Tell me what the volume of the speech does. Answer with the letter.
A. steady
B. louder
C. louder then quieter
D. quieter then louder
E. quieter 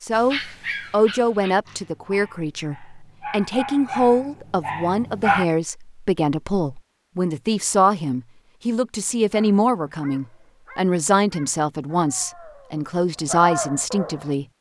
A.